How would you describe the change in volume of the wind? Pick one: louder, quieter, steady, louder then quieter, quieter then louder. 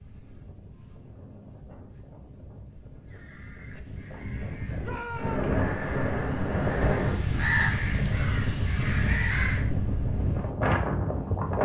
louder.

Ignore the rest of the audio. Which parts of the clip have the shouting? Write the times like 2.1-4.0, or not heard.
4.8-5.5.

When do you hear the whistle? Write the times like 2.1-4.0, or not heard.
not heard.